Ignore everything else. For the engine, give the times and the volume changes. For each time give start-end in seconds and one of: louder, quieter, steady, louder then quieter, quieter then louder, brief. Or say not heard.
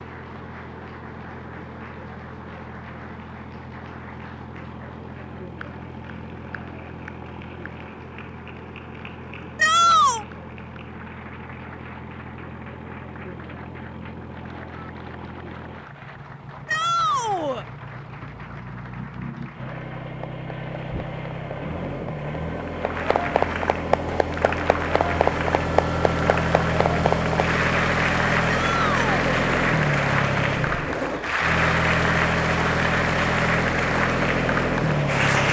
0.0-35.4 louder.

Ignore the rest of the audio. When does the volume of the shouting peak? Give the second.
10 s.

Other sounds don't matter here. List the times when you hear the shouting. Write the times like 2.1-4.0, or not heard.
9.6-10.2, 16.6-17.6, 28.4-29.2.